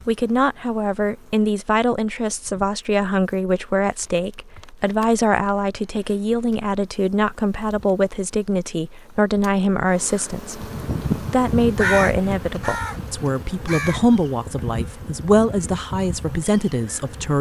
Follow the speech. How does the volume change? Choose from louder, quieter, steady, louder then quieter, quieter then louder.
steady.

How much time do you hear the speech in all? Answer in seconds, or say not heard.
17 s.